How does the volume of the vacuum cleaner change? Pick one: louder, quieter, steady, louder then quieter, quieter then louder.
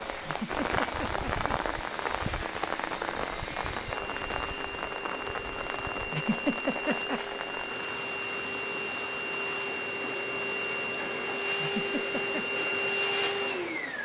louder.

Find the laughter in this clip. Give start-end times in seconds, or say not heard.
0.2-1.5, 6.1-7.4, 11.6-12.5.